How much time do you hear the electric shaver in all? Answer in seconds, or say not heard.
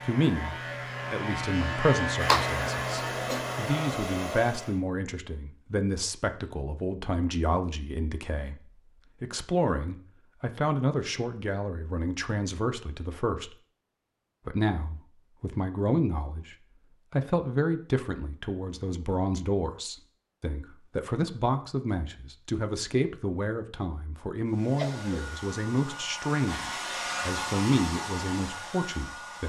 4 s.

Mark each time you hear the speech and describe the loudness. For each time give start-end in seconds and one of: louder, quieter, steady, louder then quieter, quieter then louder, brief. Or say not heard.
0.1-13.6 steady
14.4-29.4 steady.